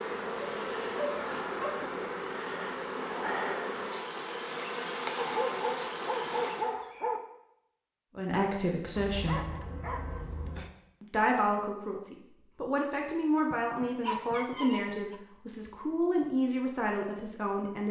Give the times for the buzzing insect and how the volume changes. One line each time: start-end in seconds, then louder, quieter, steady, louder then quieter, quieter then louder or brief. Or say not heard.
0.0-6.7 steady.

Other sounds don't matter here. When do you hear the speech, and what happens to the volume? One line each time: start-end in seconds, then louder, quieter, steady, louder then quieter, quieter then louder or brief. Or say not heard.
8.2-9.5 brief
11.0-17.8 steady.